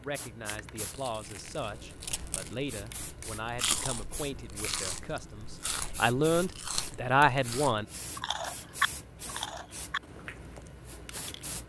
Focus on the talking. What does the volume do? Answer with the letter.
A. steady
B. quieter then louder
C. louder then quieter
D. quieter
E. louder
E.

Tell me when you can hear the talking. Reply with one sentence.
The talking can be heard from 0.0 to 7.8 s.